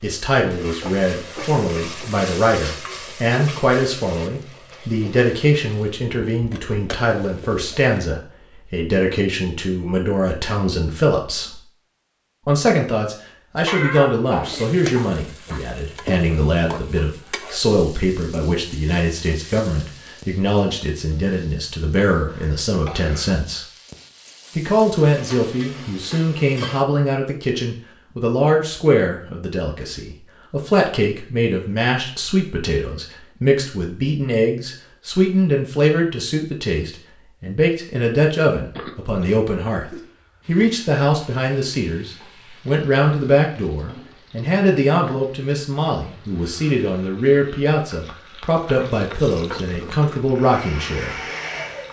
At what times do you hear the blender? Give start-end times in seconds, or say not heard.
50.2-51.8.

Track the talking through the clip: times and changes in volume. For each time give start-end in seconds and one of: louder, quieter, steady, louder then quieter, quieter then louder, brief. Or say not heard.
0.0-11.6 steady
12.4-23.6 steady
24.6-51.2 steady.